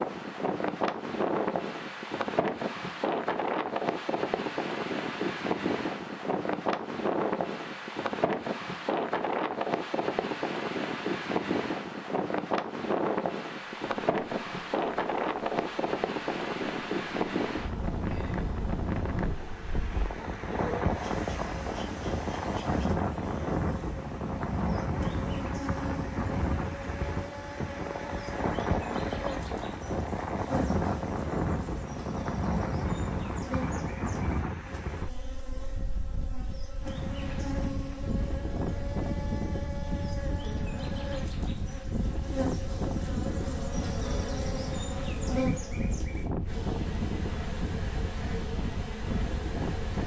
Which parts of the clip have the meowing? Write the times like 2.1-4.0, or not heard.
not heard.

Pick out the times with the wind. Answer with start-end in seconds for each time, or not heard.
0.0-50.0.